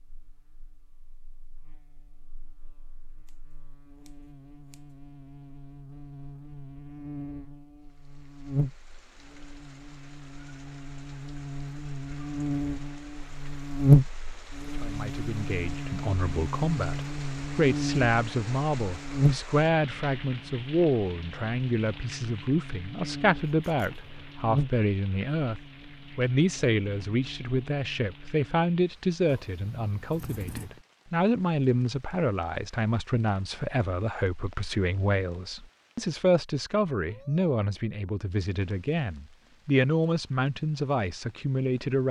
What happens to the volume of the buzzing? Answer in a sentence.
The volume of the buzzing goes up, then down.